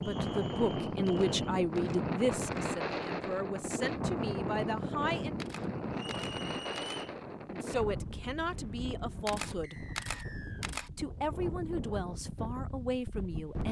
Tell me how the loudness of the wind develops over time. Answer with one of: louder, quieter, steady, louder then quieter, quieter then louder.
quieter.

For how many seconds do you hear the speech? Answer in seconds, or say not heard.
10 s.